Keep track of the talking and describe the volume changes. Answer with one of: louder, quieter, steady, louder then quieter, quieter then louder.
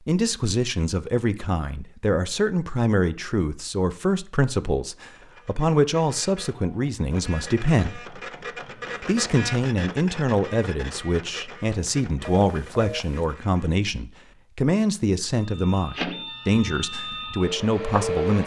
steady.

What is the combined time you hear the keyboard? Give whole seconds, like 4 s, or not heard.
not heard.